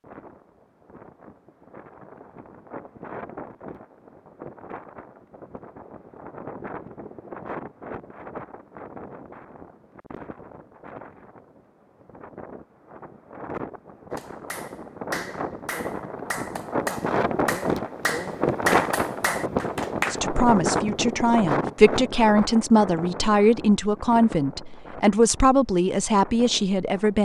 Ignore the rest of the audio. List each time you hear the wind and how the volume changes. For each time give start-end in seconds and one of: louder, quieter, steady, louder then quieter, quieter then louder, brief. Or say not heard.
0.0-27.2 louder then quieter.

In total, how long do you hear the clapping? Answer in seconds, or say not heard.
6 s.